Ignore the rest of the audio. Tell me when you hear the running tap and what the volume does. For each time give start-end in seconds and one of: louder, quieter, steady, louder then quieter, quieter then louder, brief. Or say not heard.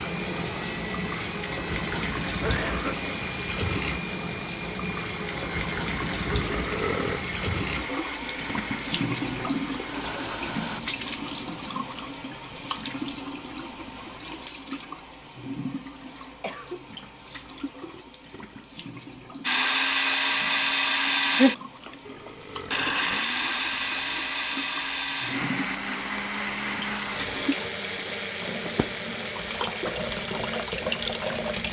0.0-31.6 quieter then louder.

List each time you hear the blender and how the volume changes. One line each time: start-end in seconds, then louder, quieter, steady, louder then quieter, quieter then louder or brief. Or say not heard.
0.0-10.8 steady
19.4-31.6 quieter.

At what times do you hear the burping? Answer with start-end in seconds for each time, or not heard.
6.3-7.3, 17.8-18.6, 22.0-23.2.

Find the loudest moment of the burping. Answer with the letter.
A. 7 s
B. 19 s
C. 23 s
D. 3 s
A.